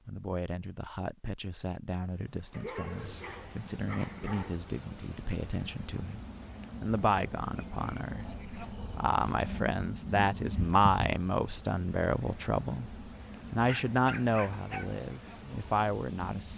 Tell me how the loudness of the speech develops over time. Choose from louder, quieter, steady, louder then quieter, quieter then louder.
louder.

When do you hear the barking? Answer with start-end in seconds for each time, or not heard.
2.5-4.6, 13.7-15.0.